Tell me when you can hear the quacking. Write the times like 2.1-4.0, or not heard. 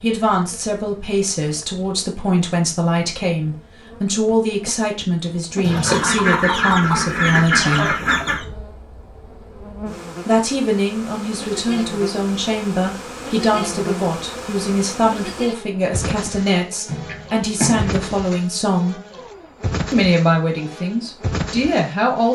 5.6-8.4, 16.9-18.0.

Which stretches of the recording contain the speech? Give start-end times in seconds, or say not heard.
0.0-8.0, 10.2-19.0, 19.9-22.3.